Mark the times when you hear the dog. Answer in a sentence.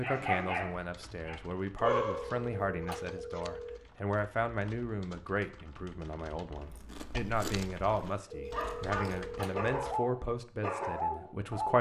You can hear the dog from 0.0 to 2.4 s and from 8.5 to 11.7 s.